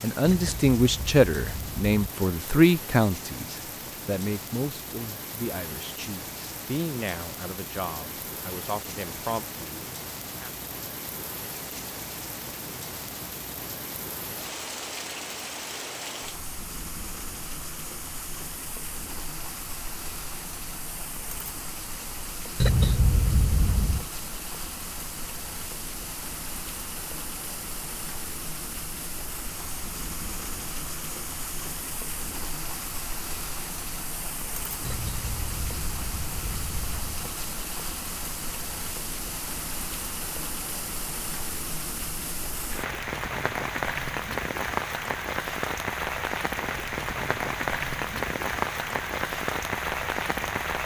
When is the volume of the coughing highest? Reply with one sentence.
The loudest moment of the coughing is at 23 seconds.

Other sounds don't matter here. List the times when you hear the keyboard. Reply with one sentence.
The keyboard can't be heard in this clip.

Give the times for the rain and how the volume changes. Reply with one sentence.
You can hear the rain from 0.0 to 50.8 s, getting louder.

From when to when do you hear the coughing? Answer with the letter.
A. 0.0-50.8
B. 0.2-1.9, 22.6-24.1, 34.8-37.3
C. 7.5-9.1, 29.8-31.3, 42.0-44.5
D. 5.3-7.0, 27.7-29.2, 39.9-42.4
B.